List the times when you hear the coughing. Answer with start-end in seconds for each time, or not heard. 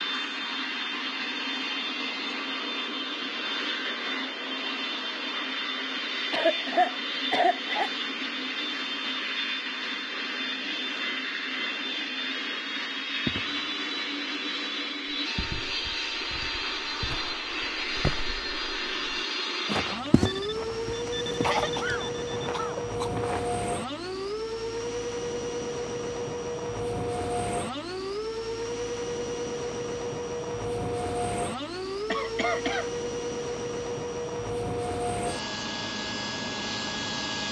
6.3-7.9, 21.4-23.1, 32.1-32.9.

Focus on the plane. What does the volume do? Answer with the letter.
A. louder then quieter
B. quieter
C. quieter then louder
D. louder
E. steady
E.